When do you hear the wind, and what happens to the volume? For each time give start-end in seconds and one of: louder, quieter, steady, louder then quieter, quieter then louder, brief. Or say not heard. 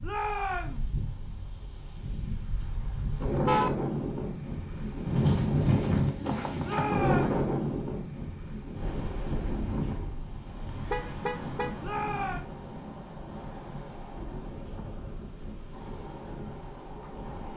0.0-17.5 louder then quieter.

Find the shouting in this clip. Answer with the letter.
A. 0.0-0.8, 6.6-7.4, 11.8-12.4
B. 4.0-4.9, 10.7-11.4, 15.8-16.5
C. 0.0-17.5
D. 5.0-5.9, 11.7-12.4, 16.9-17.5
A.